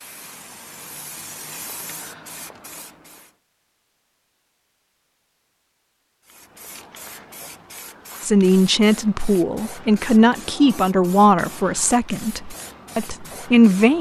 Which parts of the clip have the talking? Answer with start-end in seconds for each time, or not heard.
8.2-13.9.